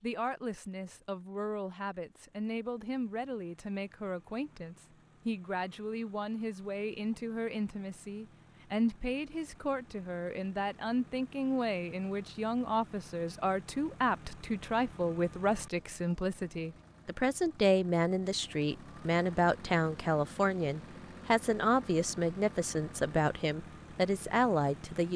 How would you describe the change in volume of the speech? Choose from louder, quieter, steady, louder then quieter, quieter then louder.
louder.